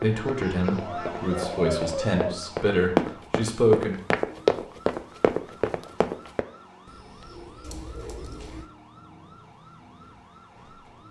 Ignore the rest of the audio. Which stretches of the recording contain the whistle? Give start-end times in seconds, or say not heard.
not heard.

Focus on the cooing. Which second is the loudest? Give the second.
2 s.